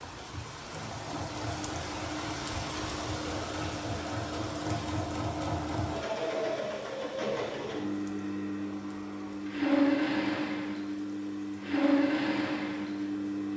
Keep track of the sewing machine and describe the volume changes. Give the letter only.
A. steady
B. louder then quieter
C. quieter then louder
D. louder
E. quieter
D.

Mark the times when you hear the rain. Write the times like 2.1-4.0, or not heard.
0.0-13.5.